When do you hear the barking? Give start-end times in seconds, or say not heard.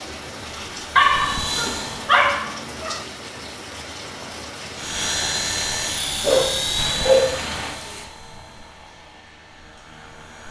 0.9-3.0, 6.2-7.4.